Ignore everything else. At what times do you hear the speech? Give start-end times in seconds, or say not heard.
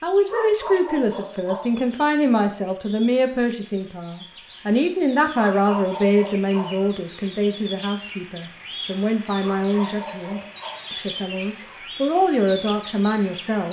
0.0-13.6.